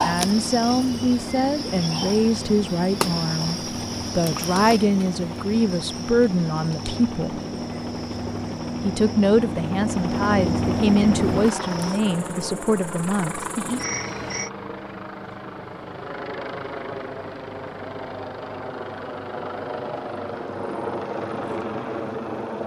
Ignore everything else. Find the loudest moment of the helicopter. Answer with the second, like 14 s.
11 s.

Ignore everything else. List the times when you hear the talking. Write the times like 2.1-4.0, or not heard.
0.0-7.4, 8.8-13.8.